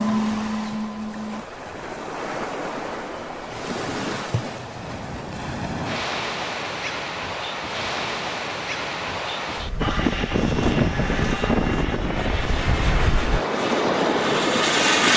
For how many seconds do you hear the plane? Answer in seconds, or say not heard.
5 s.